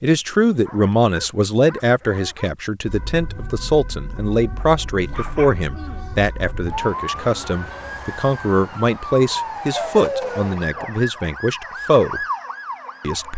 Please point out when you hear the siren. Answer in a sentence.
You can hear the siren from 2.9 to 13.3 s.